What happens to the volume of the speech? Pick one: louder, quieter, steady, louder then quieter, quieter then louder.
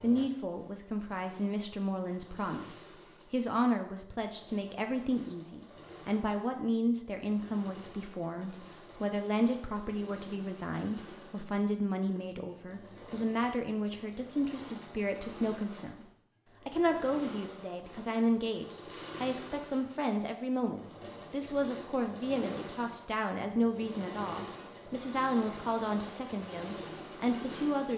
steady.